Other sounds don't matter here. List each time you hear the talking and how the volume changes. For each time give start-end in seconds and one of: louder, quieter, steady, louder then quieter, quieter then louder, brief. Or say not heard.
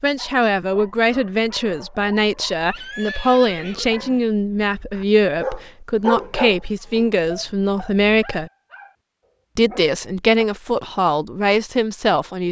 0.0-8.5 steady
9.6-12.4 brief.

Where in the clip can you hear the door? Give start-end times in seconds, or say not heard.
not heard.